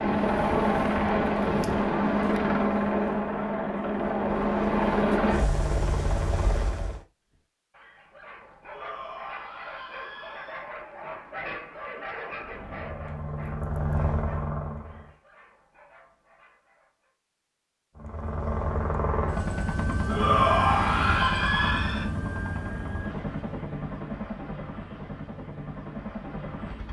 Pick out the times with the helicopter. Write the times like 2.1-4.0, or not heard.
0.0-7.0, 12.3-15.2, 17.9-26.8.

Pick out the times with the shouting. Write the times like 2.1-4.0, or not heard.
8.7-10.7, 20.1-22.1.